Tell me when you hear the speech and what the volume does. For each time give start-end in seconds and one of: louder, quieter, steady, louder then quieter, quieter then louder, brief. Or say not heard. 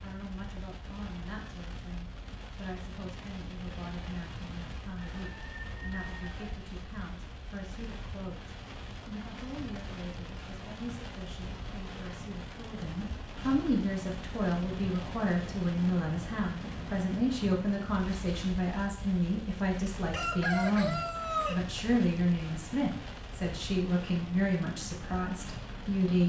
0.0-26.2 louder.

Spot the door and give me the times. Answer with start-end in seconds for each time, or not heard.
not heard.